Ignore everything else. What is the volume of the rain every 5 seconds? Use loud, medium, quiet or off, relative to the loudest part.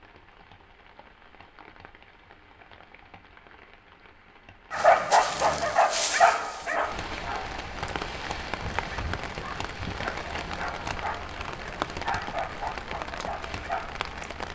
quiet, loud, loud.